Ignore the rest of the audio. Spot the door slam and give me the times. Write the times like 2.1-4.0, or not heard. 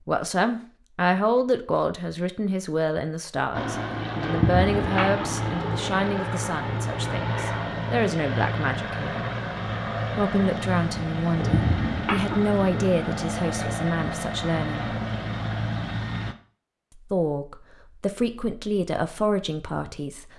not heard.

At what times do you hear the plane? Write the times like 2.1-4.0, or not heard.
3.5-16.4.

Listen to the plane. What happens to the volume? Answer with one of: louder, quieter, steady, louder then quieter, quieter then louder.
steady.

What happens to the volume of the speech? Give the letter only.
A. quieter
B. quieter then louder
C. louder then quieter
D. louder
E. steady
E.